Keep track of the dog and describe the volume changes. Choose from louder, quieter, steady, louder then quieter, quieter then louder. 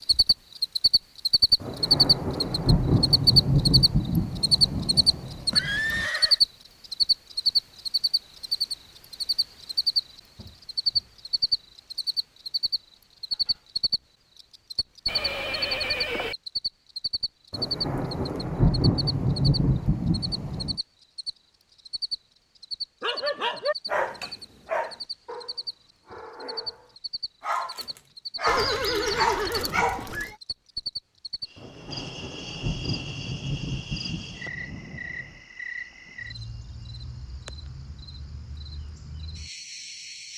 quieter then louder.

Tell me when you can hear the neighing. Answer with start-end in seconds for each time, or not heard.
5.5-6.4, 15.1-16.4, 28.4-30.4.